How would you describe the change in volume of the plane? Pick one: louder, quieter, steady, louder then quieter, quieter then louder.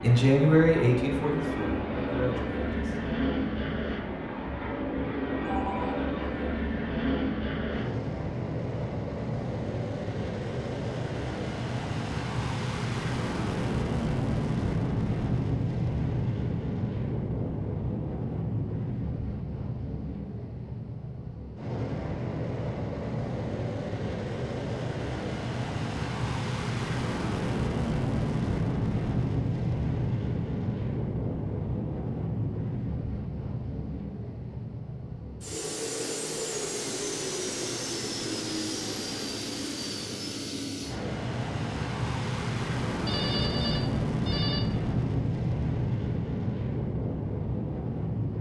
steady.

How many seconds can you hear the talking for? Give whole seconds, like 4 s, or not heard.
3 s.